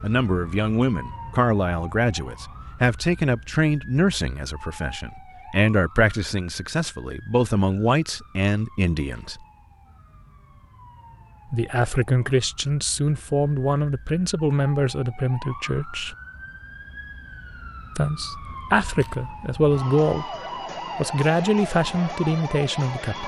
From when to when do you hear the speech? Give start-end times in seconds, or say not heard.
0.0-9.4, 11.5-16.1, 17.9-20.4, 20.9-23.2.